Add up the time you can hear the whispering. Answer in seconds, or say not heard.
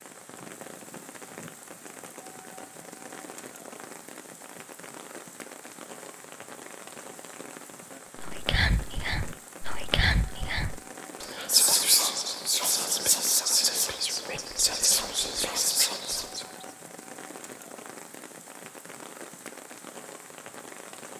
8 s.